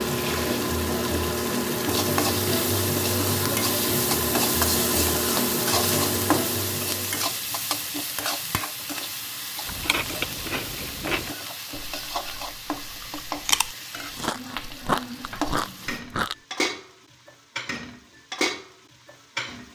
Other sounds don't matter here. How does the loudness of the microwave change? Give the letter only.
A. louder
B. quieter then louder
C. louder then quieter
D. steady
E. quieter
D.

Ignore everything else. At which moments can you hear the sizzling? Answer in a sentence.
The sizzling can be heard from 0.0 to 19.7 s.